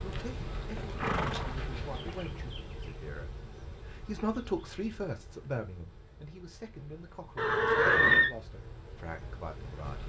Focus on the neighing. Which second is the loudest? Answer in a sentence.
The loudest moment of the neighing is at 8 seconds.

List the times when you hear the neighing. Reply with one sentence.
You can hear the neighing from 0.4 to 2.3 s and from 7.3 to 8.3 s.